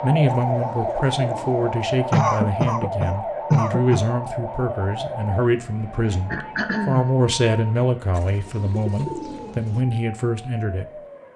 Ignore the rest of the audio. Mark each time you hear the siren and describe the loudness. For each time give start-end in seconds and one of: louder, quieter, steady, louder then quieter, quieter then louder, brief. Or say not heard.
0.0-11.3 quieter.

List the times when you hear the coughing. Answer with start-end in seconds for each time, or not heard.
2.1-4.0, 6.3-7.1.